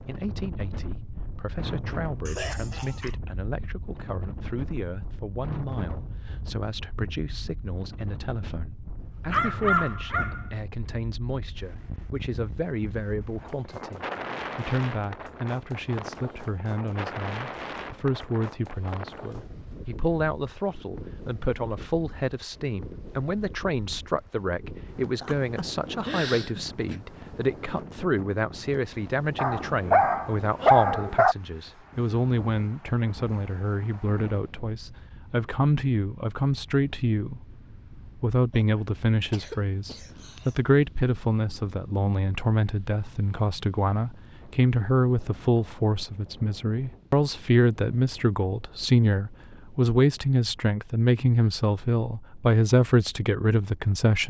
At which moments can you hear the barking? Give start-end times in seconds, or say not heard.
9.0-10.5, 29.4-31.4.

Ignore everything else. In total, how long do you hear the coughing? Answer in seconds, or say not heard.
5 s.